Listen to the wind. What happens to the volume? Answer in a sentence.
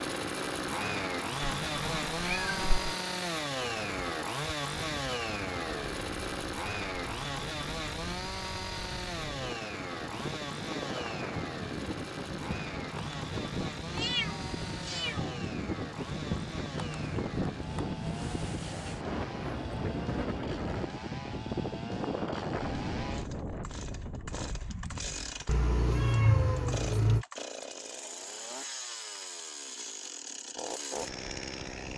The volume of the wind goes up.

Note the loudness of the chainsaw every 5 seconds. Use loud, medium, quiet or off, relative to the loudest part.
loud, loud, medium, medium, medium, medium, medium.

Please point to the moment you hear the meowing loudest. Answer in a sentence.
The loudest moment of the meowing is at 26 seconds.